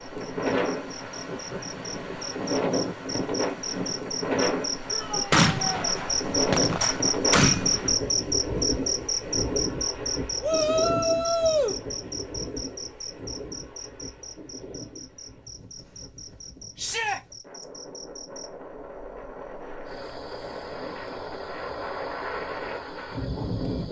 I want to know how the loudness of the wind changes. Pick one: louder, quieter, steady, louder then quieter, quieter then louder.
quieter then louder.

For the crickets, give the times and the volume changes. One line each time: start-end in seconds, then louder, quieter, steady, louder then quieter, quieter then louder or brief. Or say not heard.
0.0-23.8 louder then quieter.